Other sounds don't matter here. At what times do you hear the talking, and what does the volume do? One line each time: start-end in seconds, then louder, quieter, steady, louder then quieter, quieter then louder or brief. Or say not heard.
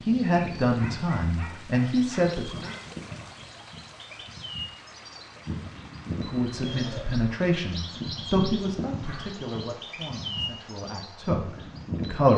0.1-2.7 brief
6.2-12.3 quieter then louder.